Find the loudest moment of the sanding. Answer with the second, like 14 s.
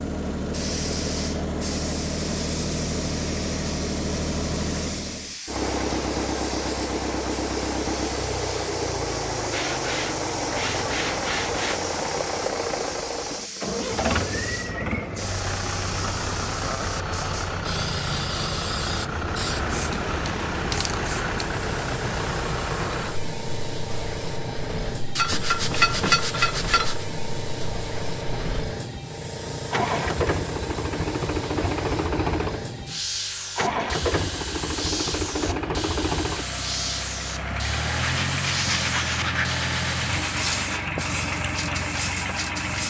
26 s.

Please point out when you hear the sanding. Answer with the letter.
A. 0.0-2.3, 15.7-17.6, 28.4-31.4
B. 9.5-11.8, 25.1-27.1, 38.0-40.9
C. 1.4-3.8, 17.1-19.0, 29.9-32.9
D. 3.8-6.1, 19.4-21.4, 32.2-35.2
B.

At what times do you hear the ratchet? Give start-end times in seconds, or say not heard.
not heard.